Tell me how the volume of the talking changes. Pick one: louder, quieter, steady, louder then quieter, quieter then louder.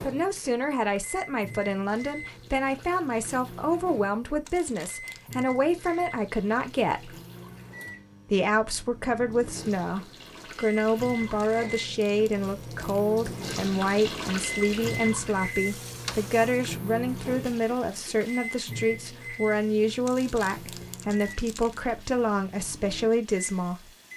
steady.